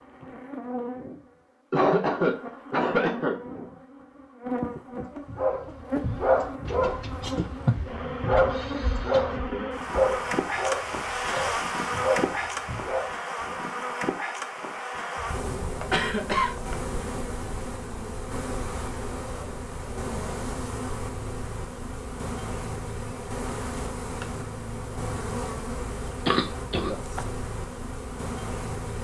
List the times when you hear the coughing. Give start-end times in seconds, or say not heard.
1.7-3.4, 15.3-16.9, 26.2-27.2.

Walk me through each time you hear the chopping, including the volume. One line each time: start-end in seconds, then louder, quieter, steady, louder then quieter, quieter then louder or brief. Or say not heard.
not heard.